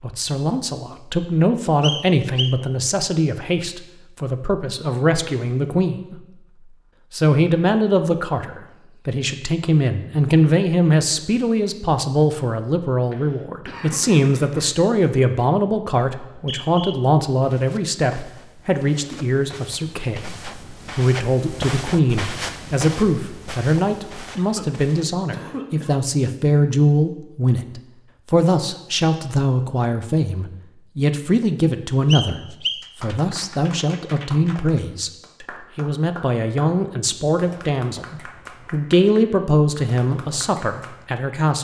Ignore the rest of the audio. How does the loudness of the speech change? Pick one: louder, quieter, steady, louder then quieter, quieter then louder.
steady.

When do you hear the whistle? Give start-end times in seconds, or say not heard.
1.8-2.5, 16.2-17.1, 32.1-32.9.